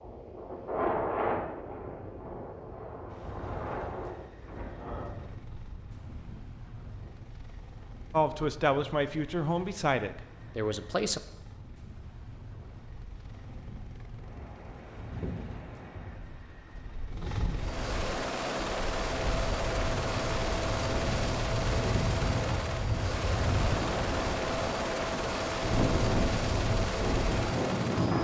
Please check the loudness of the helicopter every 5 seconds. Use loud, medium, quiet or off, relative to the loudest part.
quiet, quiet, quiet, loud, loud, loud.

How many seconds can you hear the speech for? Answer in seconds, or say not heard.
3 s.